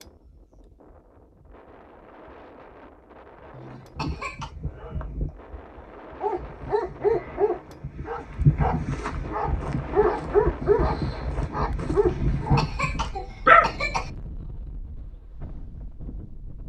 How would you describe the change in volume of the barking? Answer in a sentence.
The volume of the barking goes up.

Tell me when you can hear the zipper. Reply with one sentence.
You can't hear the zipper here.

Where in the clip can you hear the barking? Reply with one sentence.
You can hear the barking from 4.0 to 13.8 s.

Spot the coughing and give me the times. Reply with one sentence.
The coughing can be heard from 3.5 to 4.5 s and from 12.1 to 14.1 s.